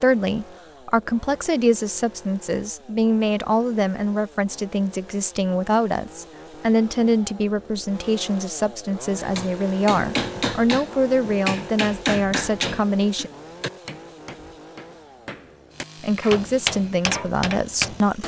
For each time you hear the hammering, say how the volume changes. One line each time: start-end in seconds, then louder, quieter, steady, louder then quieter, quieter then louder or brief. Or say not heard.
9.2-18.2 quieter then louder.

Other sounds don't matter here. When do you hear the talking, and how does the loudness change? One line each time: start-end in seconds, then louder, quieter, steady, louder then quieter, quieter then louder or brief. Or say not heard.
0.0-13.3 steady
16.0-18.2 brief.